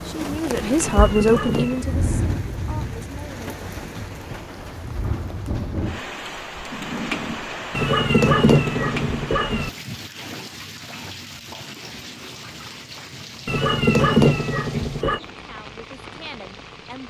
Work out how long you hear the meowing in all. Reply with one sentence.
The meowing can be heard for 5 seconds in total.